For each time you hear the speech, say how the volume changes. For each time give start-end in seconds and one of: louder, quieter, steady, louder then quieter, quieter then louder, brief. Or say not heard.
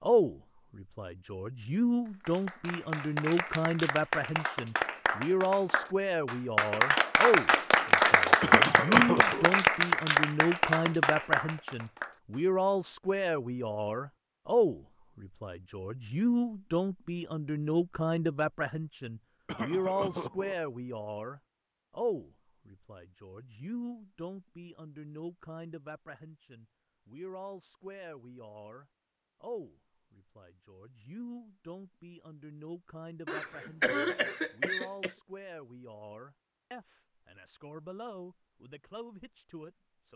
0.0-40.1 quieter.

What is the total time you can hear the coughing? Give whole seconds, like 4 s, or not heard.
4 s.